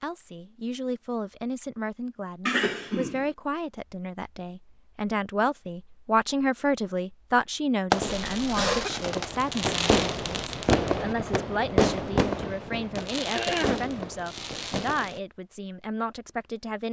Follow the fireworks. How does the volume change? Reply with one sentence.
The loudness of the fireworks goes up, then down.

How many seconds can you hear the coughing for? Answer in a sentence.
You can hear the coughing for 2 seconds altogether.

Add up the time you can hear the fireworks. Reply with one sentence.
The fireworks can be heard for 7 seconds in total.